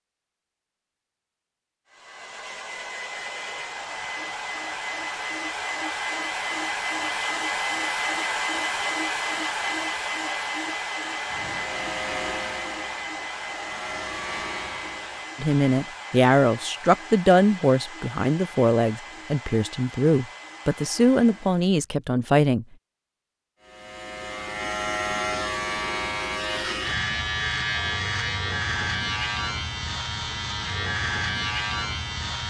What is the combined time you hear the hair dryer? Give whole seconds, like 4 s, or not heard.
20 s.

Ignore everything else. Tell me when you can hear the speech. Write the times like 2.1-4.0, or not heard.
15.3-22.6.